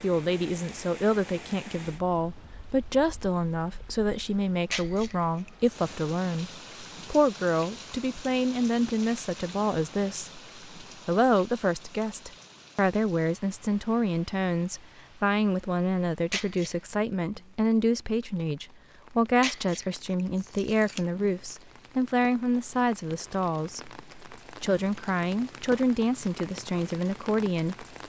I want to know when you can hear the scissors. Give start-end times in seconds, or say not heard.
4.7-5.9, 16.3-16.8, 19.4-21.0.